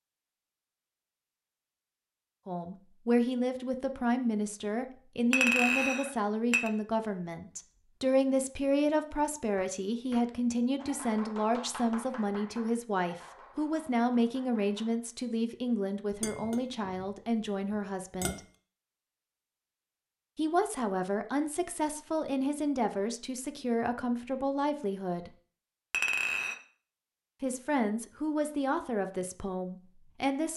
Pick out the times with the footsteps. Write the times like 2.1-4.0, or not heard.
not heard.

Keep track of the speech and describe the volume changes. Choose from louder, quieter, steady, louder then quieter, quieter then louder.
steady.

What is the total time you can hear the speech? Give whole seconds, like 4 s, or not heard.
24 s.